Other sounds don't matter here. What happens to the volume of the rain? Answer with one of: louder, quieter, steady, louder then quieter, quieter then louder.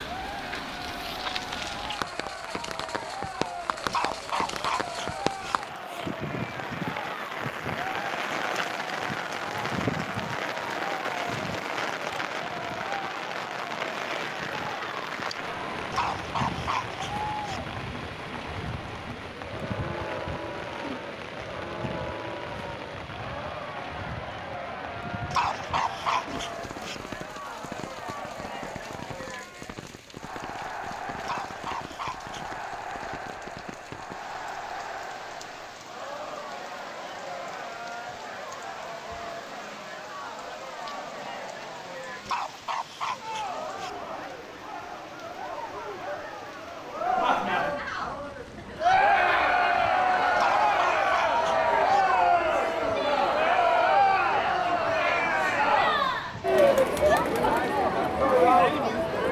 quieter.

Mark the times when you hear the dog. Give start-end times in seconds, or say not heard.
3.9-5.5, 15.9-17.6, 25.3-26.9, 31.2-32.6, 42.2-43.9, 50.4-52.0.